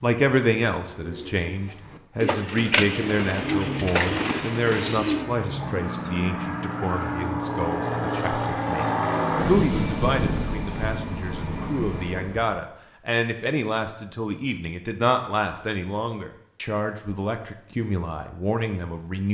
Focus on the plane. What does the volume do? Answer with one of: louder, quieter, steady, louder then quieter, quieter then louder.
louder then quieter.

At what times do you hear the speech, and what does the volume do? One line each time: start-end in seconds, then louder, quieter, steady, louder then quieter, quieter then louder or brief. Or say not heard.
0.0-19.2 steady.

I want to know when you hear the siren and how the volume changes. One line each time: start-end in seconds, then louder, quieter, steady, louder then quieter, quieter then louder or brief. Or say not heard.
not heard.